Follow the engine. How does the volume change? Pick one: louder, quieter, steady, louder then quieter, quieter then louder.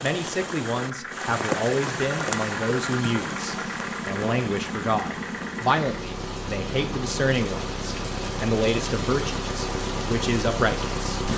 steady.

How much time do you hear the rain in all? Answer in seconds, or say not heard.
11 s.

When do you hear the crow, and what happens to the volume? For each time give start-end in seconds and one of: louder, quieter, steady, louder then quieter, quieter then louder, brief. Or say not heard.
not heard.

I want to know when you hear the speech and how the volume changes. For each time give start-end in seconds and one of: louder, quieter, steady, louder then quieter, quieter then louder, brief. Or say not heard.
0.0-11.2 steady.